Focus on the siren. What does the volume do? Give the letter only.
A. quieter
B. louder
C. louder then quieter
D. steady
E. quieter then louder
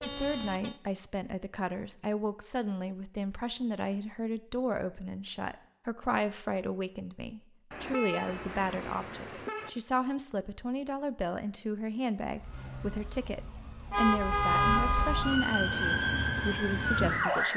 B.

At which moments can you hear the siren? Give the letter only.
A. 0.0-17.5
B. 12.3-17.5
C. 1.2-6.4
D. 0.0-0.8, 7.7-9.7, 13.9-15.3
B.